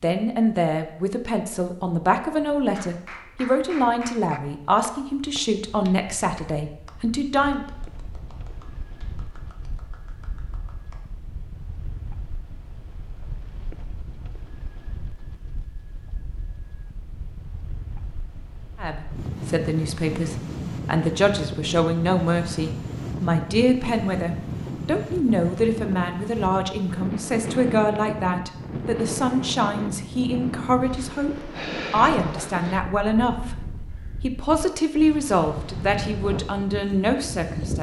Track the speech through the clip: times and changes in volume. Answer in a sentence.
The speech can be heard from 0.0 to 7.7 s, at a steady volume; and from 18.8 to 37.7 s, at a steady volume.